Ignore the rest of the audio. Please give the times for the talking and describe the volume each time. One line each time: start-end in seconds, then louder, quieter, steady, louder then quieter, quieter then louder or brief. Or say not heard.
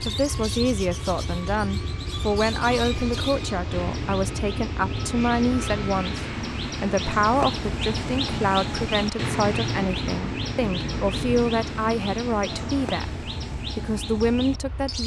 0.1-15.0 steady.